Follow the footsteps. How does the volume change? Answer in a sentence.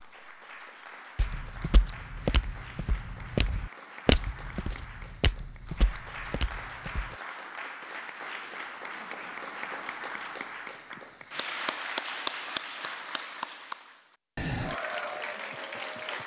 The loudness of the footsteps goes up, then down.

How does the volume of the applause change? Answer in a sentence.
The volume of the applause goes up.